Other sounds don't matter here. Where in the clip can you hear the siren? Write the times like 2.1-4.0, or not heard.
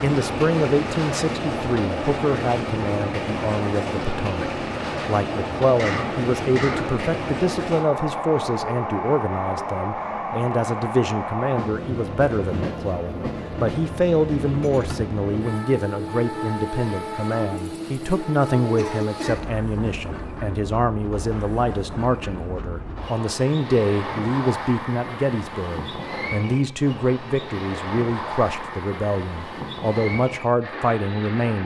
not heard.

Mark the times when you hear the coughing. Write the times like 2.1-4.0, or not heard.
5.8-7.0, 18.8-19.5.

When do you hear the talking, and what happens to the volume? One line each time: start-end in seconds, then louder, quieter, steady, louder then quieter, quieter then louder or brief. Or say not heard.
0.0-31.6 steady.